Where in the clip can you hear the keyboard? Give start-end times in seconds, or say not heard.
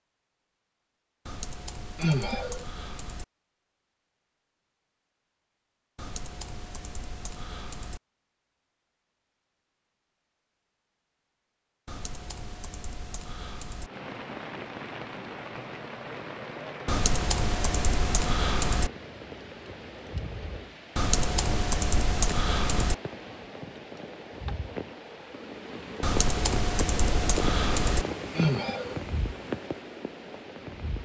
1.2-3.2, 6.0-8.0, 11.8-13.9, 16.9-18.9, 20.9-22.9, 26.0-28.1.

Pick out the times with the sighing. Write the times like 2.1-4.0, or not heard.
1.9-2.6, 28.4-29.0.